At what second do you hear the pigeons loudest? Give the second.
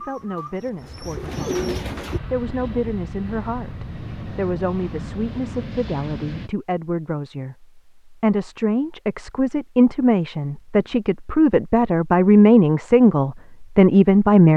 2 s.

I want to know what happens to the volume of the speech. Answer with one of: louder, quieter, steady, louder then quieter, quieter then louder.
louder.